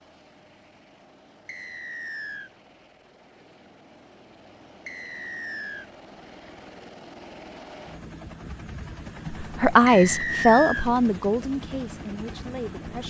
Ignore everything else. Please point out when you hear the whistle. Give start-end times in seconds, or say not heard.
1.4-2.5, 4.8-5.9, 9.8-10.9.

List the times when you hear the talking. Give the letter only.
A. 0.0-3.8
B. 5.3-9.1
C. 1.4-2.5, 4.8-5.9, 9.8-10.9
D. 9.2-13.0
D.